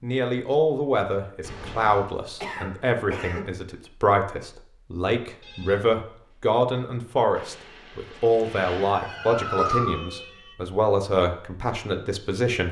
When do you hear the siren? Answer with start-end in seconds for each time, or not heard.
8.9-10.6.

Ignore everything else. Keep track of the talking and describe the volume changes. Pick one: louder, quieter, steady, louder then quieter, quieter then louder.
steady.